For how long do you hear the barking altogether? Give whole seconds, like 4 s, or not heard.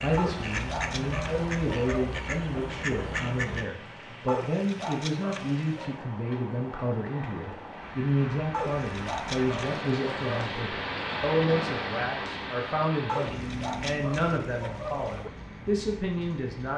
8 s.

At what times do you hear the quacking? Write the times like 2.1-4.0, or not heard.
0.0-3.7.